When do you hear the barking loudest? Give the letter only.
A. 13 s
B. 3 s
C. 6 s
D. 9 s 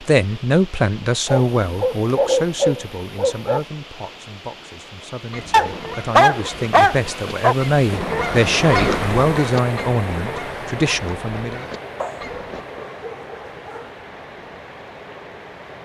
C.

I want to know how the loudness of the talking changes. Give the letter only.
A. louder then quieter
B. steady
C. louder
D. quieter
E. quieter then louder
E.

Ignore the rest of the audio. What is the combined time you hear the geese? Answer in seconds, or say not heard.
7 s.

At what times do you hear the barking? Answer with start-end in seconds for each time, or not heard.
1.2-3.6, 5.5-7.5, 12.0-13.9.